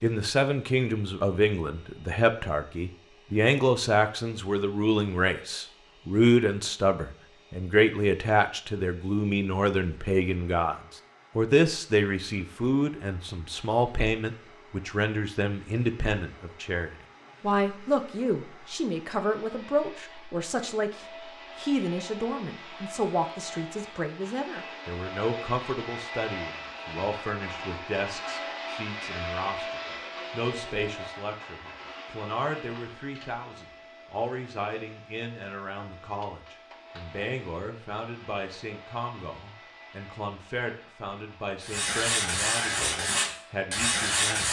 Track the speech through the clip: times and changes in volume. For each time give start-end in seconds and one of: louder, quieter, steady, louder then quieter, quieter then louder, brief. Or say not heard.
0.0-44.4 quieter.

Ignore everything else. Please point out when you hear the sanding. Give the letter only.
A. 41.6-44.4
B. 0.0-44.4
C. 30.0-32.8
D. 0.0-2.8
A.